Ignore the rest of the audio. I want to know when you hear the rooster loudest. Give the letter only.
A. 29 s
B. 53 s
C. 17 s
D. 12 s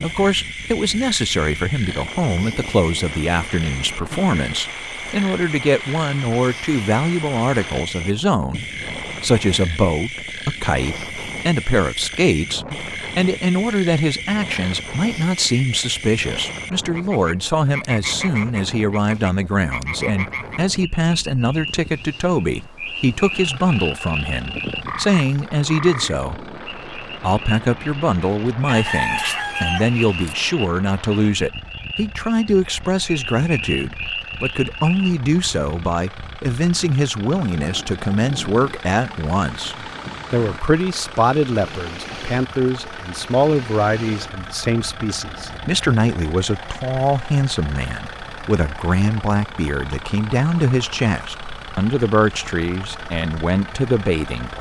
A.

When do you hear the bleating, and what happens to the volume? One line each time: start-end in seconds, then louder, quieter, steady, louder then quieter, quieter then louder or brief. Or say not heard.
not heard.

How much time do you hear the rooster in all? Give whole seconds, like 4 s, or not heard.
2 s.